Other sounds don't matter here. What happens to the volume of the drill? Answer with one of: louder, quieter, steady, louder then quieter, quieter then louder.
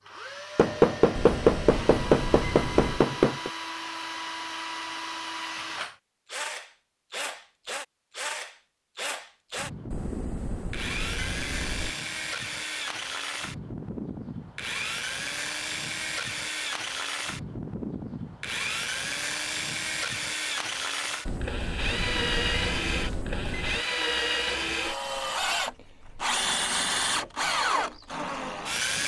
louder.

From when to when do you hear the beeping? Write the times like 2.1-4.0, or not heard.
1.1-3.0, 9.9-11.9, 21.2-23.9.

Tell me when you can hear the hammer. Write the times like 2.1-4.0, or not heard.
0.6-3.5.